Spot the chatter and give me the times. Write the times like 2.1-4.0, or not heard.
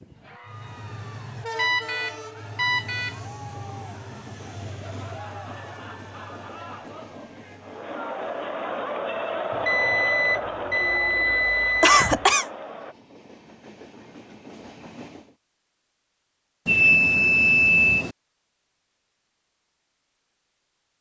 0.1-12.9.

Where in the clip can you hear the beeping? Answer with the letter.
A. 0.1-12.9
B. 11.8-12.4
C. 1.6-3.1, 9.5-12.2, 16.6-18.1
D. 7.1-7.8
C.